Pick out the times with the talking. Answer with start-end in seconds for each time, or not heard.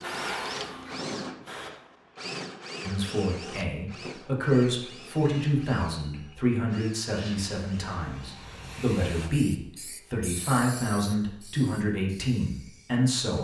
2.9-13.4.